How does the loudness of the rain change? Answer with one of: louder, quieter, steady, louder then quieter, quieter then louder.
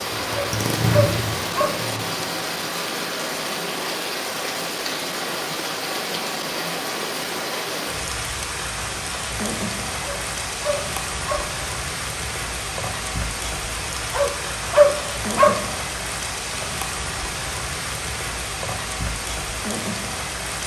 steady.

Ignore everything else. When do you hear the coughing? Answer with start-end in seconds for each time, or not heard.
not heard.